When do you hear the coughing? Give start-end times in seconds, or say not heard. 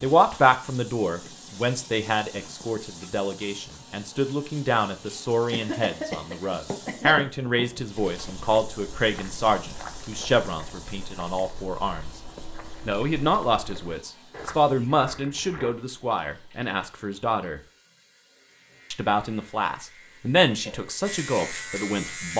5.5-7.2.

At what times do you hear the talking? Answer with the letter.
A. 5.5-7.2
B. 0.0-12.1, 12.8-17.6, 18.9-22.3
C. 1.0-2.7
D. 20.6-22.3
B.